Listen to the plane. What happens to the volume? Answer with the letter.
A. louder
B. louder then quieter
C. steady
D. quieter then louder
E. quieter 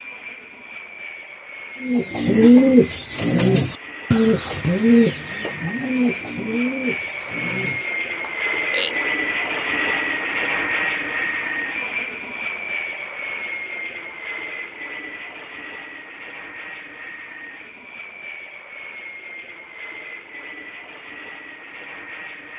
B.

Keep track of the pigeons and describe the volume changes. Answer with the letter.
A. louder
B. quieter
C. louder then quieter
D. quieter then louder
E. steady
B.